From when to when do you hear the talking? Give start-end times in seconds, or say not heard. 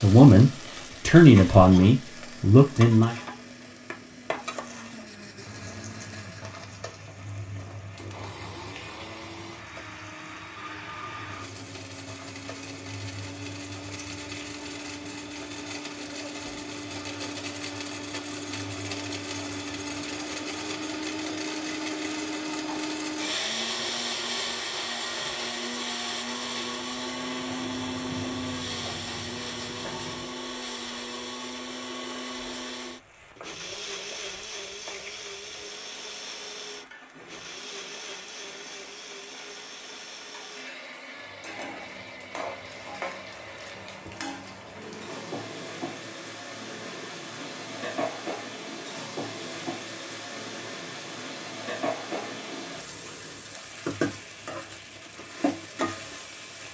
0.0-3.1.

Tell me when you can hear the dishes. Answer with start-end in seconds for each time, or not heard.
not heard.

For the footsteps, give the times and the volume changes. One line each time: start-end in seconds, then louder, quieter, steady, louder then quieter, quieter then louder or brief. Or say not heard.
not heard.